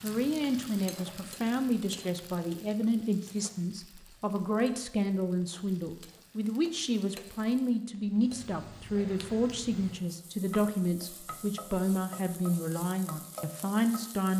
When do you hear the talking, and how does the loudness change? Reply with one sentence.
You can hear the talking from 0.0 to 14.3 s, at a steady volume.